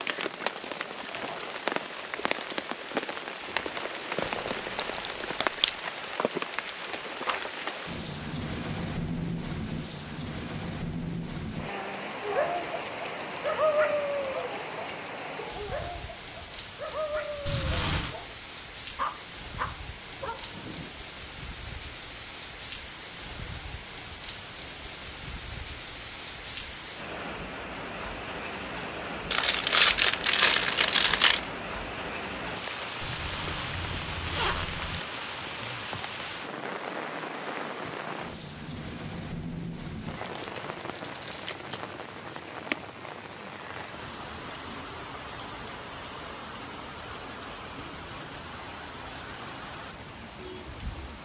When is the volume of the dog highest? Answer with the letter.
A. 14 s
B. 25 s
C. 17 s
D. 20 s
A.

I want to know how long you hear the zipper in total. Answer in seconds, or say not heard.
3 s.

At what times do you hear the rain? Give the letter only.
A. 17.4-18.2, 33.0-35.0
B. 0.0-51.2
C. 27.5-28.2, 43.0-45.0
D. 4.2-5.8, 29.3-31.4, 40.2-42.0
B.